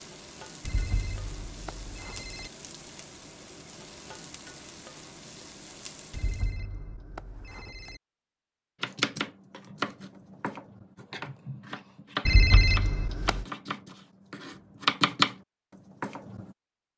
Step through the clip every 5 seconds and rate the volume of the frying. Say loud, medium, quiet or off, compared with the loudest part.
loud, loud, off, off.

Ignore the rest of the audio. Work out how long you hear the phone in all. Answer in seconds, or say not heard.
5 s.